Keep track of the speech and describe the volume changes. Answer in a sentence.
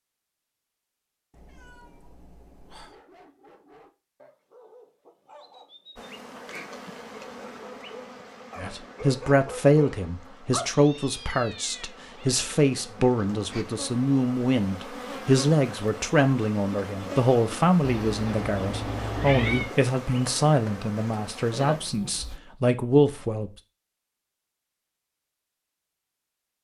The volume of the speech stays about the same.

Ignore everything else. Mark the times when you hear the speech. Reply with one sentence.
You can hear the speech from 8.6 to 23.5 s.